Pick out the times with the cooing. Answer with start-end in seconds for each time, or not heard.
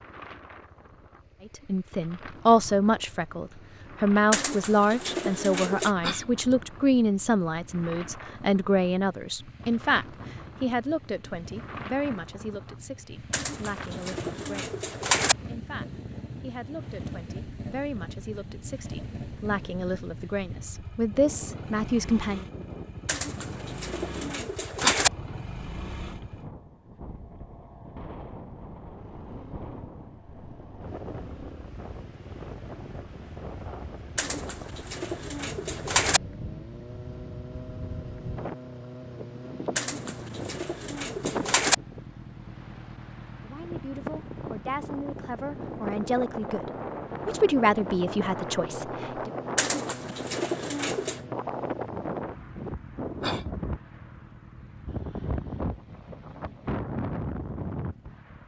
4.3-5.9, 13.3-15.3, 23.1-25.1, 34.1-36.2, 39.8-41.8, 49.5-51.2.